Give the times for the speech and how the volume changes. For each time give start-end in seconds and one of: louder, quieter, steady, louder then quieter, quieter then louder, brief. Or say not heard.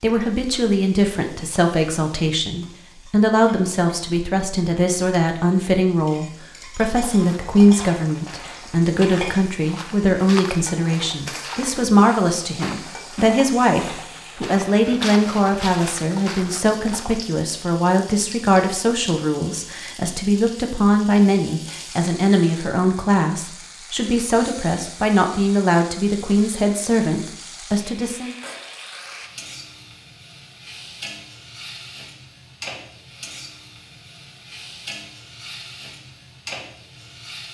0.0-28.4 steady.